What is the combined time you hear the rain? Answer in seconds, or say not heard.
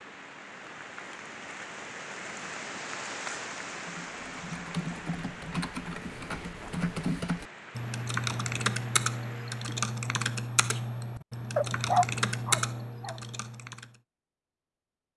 10 s.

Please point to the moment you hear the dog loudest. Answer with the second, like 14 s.
12 s.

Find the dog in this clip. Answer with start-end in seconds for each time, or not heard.
11.6-13.2.